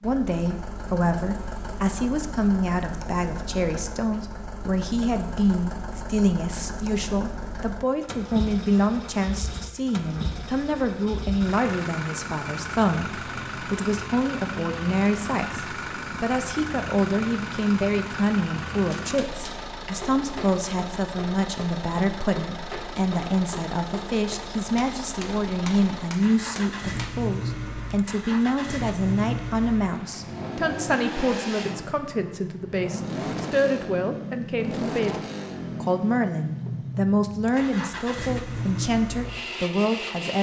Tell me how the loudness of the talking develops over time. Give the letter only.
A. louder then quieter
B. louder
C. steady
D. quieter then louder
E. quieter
C.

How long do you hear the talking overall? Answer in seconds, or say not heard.
40 s.